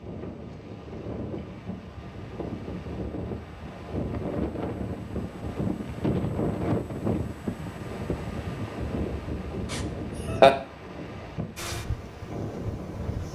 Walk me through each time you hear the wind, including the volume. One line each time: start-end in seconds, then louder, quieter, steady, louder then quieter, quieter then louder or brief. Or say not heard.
0.0-13.3 louder then quieter.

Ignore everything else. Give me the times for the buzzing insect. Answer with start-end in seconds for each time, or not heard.
11.6-13.3.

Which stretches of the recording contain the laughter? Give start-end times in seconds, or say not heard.
9.7-10.5.